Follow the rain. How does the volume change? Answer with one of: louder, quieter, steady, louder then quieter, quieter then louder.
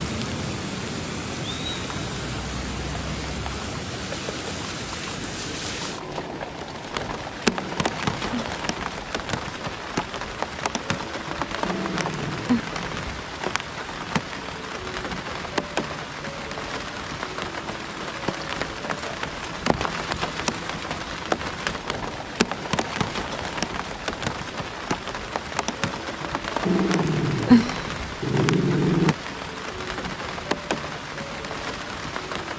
steady.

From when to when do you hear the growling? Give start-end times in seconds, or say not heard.
7.5-8.6, 11.6-12.7, 26.6-29.1.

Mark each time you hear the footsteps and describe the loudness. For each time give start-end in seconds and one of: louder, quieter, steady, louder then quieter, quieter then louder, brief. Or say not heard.
not heard.